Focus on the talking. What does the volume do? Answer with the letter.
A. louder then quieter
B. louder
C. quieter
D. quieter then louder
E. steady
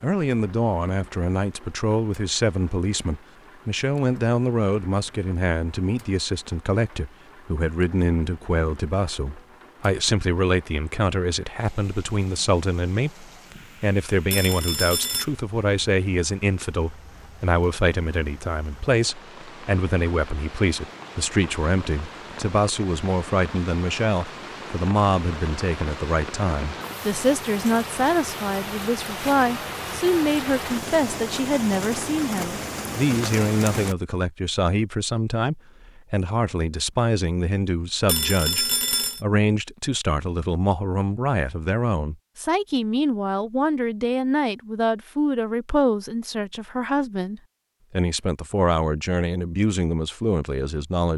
E.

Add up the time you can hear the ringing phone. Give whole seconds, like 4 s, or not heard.
2 s.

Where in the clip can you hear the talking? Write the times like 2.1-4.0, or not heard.
0.0-51.1.